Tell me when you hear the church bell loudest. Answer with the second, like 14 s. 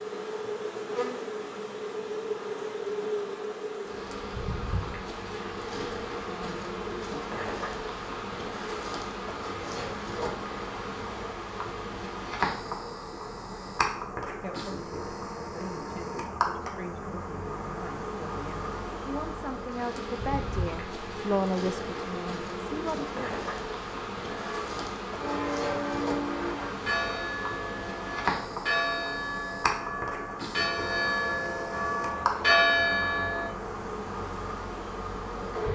33 s.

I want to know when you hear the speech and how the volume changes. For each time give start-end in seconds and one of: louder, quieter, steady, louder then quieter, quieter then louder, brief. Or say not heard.
14.4-23.2 louder.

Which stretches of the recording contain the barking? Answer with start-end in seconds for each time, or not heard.
not heard.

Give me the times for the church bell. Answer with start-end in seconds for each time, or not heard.
24.3-33.5.